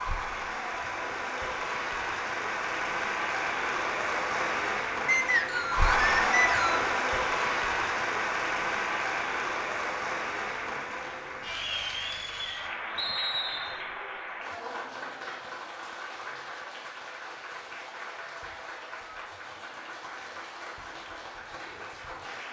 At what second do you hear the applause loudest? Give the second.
6 s.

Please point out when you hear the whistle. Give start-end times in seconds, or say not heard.
5.0-6.9, 12.9-13.8.